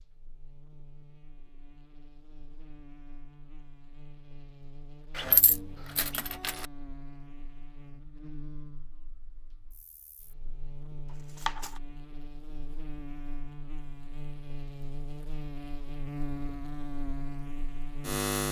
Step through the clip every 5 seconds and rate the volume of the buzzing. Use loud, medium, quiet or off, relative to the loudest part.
quiet, quiet, medium, loud.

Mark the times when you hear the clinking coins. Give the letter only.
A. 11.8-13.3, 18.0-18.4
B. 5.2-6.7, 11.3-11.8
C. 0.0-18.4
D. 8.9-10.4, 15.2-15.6
B.